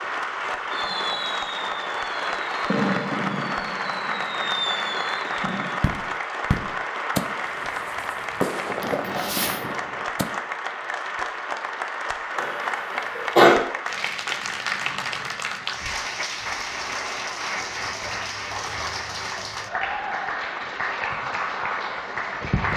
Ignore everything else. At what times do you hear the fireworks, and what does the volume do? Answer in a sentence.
You can hear the fireworks from 0.7 to 10.3 s, at a steady volume.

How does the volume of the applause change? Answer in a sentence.
The volume of the applause stays about the same.